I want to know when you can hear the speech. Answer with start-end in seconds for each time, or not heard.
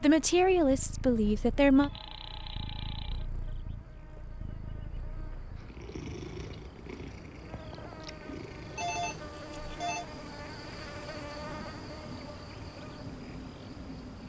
0.0-1.9.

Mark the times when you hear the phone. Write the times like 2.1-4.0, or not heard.
1.8-3.2, 8.8-10.1.